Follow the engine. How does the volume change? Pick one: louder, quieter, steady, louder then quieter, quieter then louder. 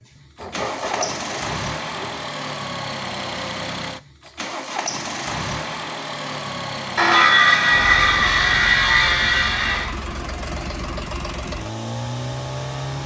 steady.